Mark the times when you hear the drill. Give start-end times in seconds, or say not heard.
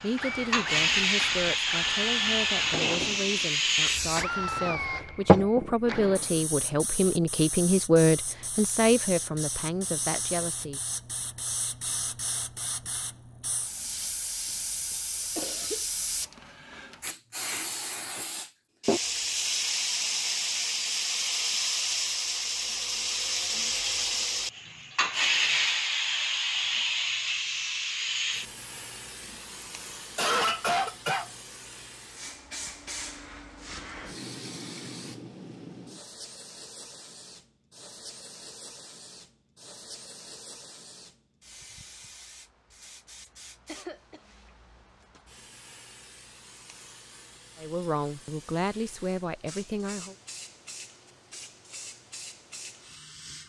0.0-6.3.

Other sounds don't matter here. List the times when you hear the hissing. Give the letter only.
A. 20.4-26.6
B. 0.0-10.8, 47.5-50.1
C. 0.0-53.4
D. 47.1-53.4
C.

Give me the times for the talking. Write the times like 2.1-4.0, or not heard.
0.0-10.8, 47.5-50.1.